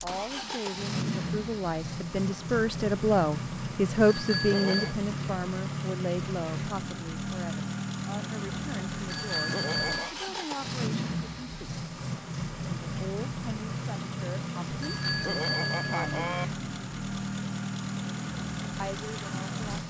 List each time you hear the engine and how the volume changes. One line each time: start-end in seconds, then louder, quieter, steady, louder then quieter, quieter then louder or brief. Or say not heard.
0.0-19.8 steady.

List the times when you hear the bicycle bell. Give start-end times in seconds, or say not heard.
4.0-5.0, 9.1-10.2, 14.8-16.4.